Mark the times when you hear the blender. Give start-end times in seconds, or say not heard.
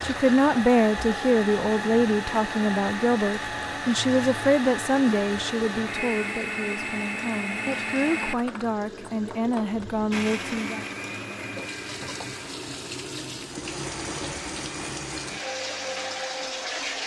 0.0-17.0.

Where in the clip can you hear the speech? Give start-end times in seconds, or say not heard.
0.0-10.8.